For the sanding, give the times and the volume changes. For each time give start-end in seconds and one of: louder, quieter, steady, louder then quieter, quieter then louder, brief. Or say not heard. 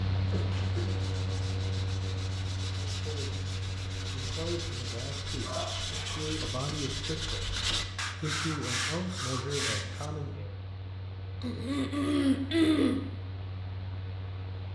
0.3-10.1 louder.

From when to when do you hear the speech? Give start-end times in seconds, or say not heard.
2.9-10.6.